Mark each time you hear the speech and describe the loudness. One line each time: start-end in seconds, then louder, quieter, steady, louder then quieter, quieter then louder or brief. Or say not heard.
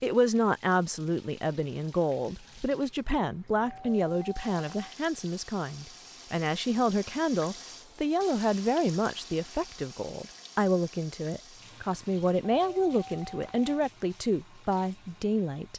0.0-15.7 steady.